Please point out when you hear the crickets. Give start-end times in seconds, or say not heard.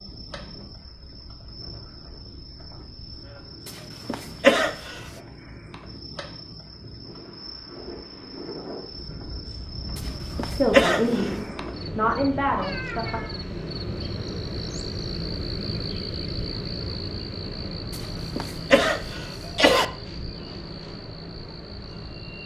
0.0-22.4.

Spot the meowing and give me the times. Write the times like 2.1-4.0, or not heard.
12.4-13.4.